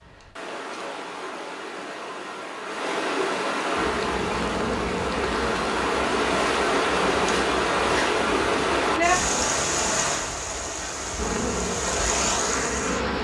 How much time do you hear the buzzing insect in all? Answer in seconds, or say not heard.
8 s.